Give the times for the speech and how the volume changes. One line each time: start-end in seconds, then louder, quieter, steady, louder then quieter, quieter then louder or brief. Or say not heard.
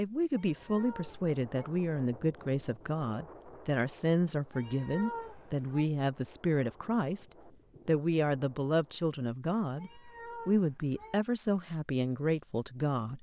0.0-13.1 steady.